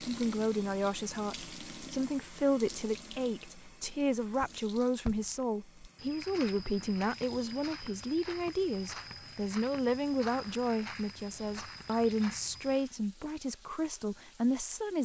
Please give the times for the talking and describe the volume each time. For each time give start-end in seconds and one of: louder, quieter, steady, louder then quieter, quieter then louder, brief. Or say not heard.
0.0-15.0 steady.